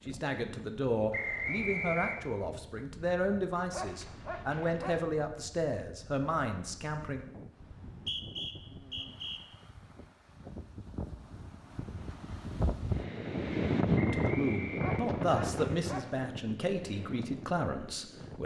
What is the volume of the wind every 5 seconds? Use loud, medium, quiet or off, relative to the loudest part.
quiet, quiet, loud, medium.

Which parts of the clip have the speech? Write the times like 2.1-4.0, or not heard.
0.1-7.2, 13.9-18.4.